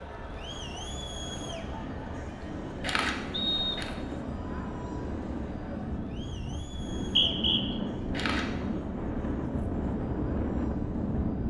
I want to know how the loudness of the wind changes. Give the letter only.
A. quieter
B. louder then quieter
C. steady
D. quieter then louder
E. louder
E.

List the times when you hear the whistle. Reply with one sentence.
The whistle can be heard from 3.3 to 3.9 s and from 6.8 to 7.6 s.